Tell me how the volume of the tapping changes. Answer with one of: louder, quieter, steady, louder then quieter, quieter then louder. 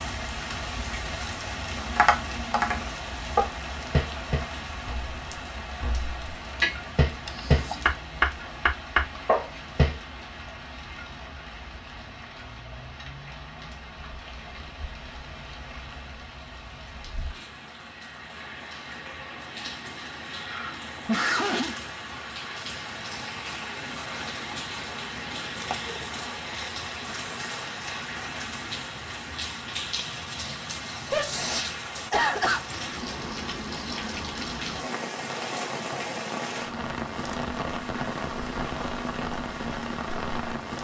quieter then louder.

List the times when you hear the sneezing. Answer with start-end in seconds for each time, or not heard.
7.2-7.9, 20.4-21.8, 31.1-32.6.